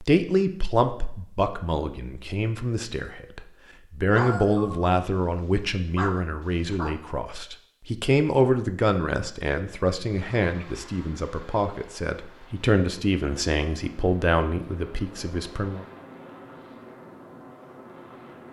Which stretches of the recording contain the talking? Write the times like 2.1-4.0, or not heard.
0.0-15.8.